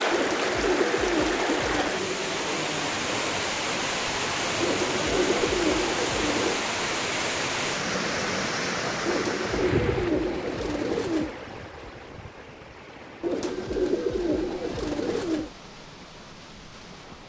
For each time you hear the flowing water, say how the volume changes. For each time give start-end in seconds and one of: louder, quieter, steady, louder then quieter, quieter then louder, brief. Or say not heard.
0.0-17.2 quieter.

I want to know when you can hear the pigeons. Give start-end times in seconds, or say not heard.
0.1-1.9, 4.6-6.6, 9.1-11.3, 13.2-15.5.